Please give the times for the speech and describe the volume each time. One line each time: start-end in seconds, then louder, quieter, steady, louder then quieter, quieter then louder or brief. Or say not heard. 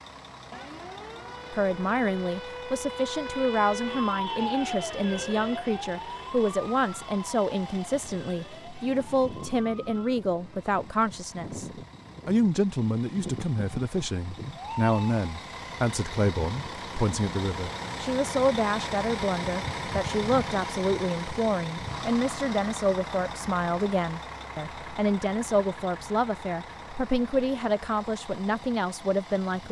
1.5-29.6 steady.